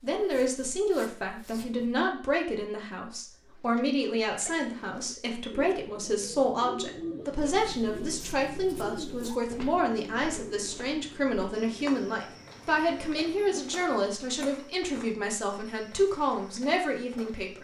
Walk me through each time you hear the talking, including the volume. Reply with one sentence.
The talking can be heard from 0.0 to 17.5 s, at a steady volume.